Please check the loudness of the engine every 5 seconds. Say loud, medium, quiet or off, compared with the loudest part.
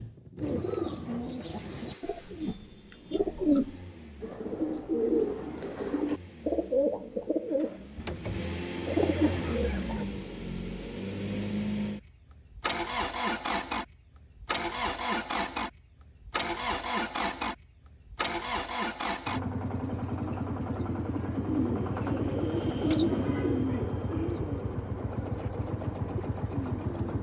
quiet, medium, loud, loud, loud, loud.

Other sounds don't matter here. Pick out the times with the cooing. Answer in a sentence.
The cooing can be heard from 0.4 to 10.1 s and from 20.2 to 27.1 s.